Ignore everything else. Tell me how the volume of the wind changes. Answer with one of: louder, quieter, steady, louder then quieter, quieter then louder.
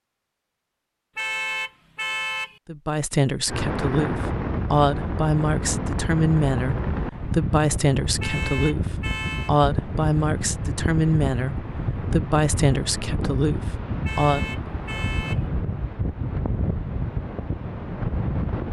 steady.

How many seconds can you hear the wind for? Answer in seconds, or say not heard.
15 s.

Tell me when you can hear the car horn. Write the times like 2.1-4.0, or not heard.
1.1-2.6, 8.2-9.5, 14.1-15.4.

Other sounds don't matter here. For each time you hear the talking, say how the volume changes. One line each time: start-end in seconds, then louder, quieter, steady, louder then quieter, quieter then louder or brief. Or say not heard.
2.6-14.7 steady.